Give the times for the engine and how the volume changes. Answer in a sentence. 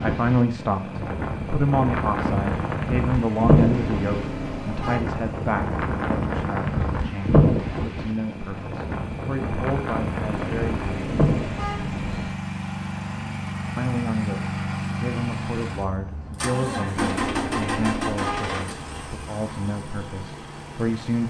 The engine can be heard from 0.2 to 21.2 s, getting louder.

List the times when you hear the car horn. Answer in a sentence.
The car horn can be heard from 3.6 to 5.0 s, from 10.3 to 12.3 s and from 16.9 to 18.6 s.